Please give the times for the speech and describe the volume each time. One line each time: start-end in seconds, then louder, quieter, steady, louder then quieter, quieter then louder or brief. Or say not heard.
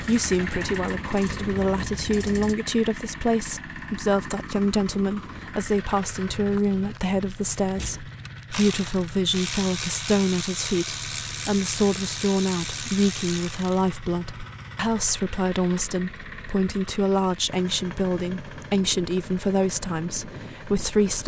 0.0-21.2 steady.